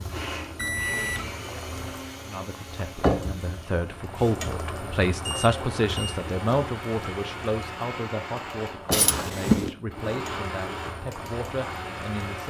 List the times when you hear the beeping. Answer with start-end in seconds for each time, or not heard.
0.6-1.4, 5.2-6.2, 8.9-9.7.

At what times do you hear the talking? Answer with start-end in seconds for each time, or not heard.
2.2-12.4.